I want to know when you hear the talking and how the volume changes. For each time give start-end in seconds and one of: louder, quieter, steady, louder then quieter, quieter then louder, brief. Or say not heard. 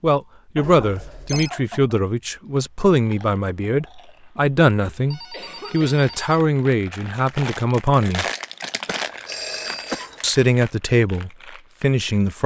0.0-8.2 steady
10.2-12.4 brief.